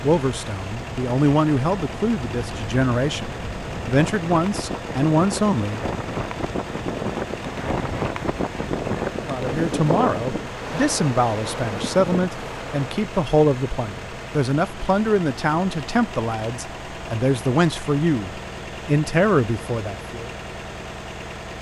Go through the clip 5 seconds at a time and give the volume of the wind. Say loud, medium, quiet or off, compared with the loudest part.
medium, loud, loud, off, off.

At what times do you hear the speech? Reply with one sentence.
The speech can be heard from 0.0 to 5.8 s and from 9.2 to 20.3 s.